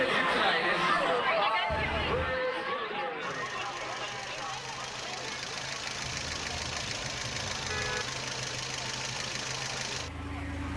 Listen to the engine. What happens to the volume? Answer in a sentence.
The loudness of the engine goes up.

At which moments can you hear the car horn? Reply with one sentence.
You can hear the car horn from 1.6 to 2.4 s and from 6.0 to 8.1 s.